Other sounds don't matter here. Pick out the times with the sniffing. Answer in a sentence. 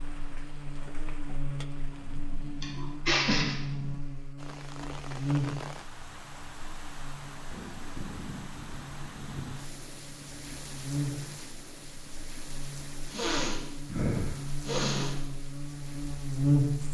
The sniffing can be heard from 2.6 to 3.5 s and from 13.1 to 15.2 s.